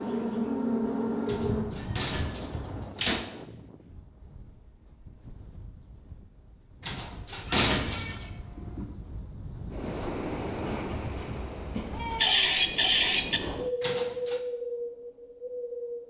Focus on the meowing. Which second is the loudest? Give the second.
12 s.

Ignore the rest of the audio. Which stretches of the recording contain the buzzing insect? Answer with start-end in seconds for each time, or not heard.
0.0-1.6, 9.8-12.2.